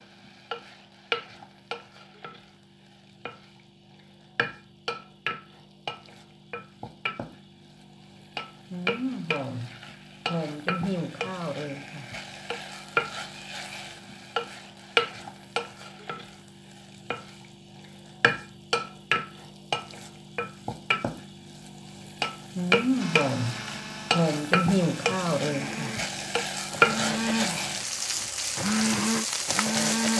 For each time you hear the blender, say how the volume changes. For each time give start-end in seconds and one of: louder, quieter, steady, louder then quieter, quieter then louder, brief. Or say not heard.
22.9-30.1 louder.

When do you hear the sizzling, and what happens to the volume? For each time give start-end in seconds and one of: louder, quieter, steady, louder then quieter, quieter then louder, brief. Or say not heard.
0.0-30.1 louder.